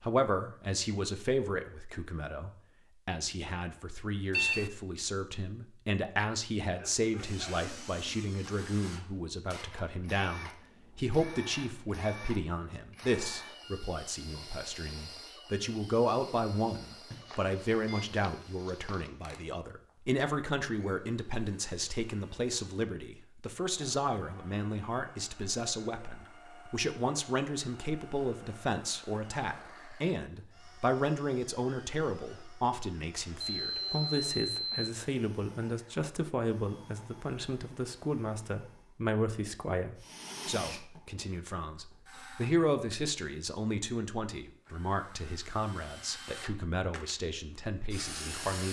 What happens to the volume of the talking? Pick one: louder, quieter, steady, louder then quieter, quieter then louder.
steady.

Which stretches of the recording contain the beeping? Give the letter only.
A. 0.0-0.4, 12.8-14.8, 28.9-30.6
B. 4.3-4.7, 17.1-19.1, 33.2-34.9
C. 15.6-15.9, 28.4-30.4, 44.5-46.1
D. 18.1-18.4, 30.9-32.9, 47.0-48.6
B.